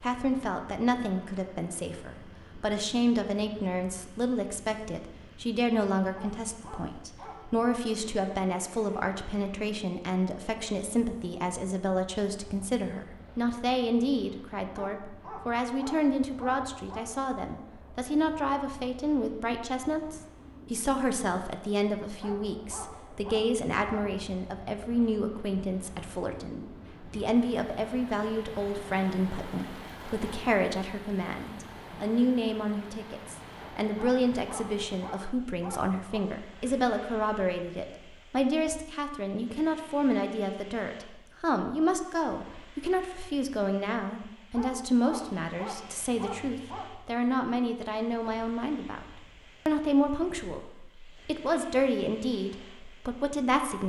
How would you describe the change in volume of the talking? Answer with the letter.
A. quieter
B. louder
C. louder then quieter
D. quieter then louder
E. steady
E.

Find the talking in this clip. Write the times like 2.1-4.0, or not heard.
0.0-49.0, 49.6-53.8.